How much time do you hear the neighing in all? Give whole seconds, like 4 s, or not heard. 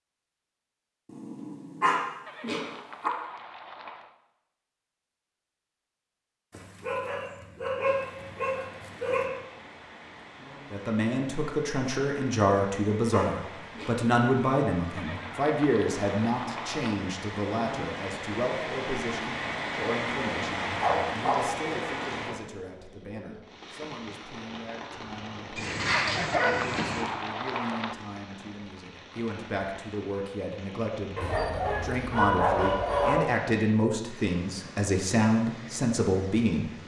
6 s.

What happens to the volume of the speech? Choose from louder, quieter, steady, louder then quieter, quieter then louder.
quieter then louder.